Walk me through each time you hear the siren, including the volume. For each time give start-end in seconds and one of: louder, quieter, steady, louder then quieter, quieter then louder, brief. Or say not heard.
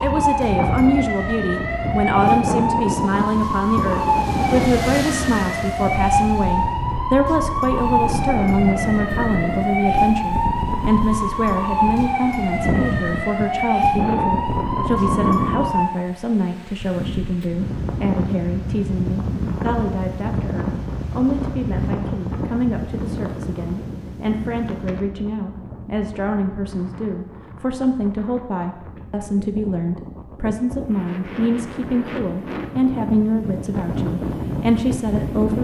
0.0-15.9 steady.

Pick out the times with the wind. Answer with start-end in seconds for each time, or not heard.
0.0-35.6.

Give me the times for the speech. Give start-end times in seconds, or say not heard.
0.0-35.6.